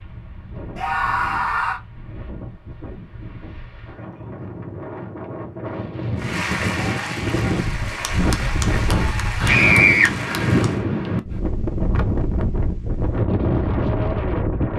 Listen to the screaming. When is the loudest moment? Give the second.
10 s.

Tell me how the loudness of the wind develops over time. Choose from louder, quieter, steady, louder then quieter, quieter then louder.
louder.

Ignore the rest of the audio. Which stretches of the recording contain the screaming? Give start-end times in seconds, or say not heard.
0.8-1.8, 9.4-10.1.